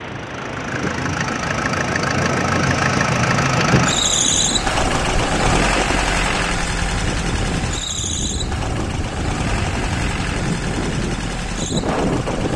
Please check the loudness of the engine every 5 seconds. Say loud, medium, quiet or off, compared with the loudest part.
loud, loud, medium.